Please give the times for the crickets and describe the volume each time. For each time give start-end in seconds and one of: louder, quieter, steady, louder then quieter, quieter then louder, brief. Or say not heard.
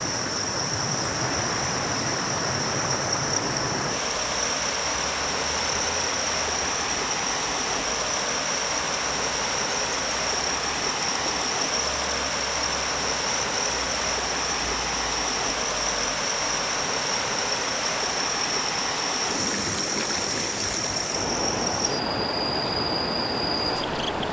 0.0-24.2 steady.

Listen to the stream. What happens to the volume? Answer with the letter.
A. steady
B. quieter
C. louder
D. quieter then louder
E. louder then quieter
A.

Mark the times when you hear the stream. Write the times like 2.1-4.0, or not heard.
0.0-24.2.